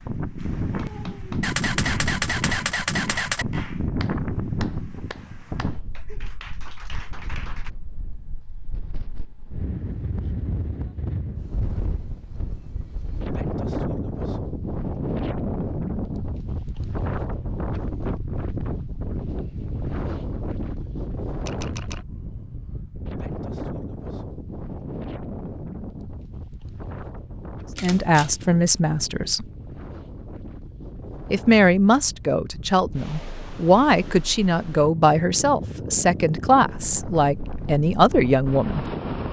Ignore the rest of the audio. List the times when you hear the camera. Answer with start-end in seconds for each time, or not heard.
1.4-3.5, 21.4-22.1, 27.8-28.4.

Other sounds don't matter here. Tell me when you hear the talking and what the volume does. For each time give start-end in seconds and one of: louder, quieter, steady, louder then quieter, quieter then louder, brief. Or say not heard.
27.8-29.4 brief
31.3-38.9 steady.